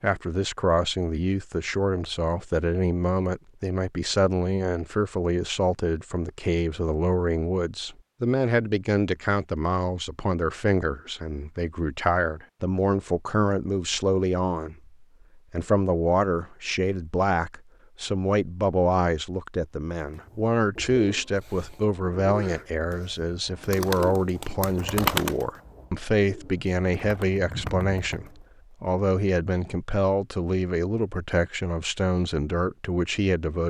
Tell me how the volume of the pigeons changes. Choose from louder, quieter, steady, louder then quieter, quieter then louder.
louder then quieter.